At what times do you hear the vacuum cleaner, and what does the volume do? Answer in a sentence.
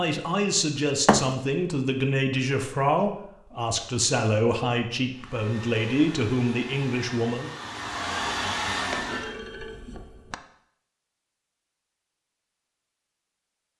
You can hear the vacuum cleaner from 5.1 to 9.3 s, getting louder.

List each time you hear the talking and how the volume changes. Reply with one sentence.
You can hear the talking from 0.0 to 7.5 s, at a steady volume.